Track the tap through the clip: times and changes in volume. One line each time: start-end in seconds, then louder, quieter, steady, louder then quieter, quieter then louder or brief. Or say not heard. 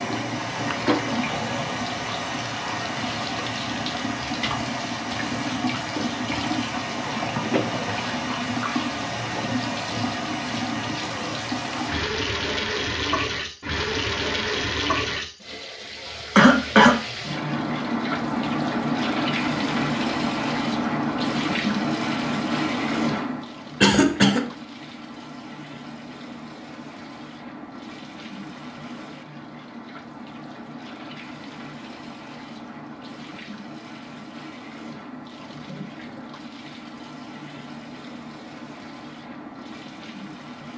0.0-40.7 quieter.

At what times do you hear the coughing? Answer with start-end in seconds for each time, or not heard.
16.4-16.9, 23.8-24.5.